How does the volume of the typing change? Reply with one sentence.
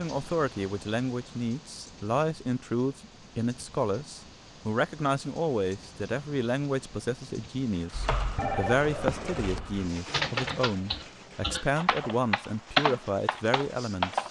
The volume of the typing goes up.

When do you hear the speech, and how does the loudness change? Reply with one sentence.
The speech can be heard from 0.0 to 14.2 s, at a steady volume.